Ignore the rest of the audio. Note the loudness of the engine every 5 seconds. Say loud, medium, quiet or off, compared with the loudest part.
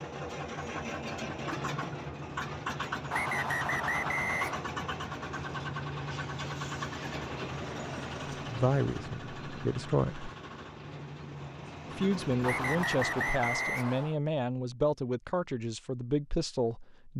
loud, loud, medium, off.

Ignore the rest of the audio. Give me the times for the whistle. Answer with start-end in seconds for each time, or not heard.
3.1-4.7, 12.4-14.2.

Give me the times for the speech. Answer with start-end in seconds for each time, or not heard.
8.4-10.3, 11.9-17.1.